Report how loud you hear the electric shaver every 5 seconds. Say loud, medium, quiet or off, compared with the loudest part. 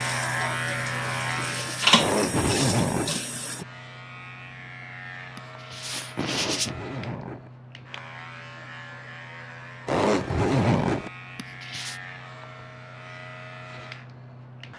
loud, medium, medium.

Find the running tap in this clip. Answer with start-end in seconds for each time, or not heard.
0.0-3.6.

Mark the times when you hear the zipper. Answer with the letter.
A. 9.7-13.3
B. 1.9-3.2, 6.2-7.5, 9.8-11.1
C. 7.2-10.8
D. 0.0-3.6
B.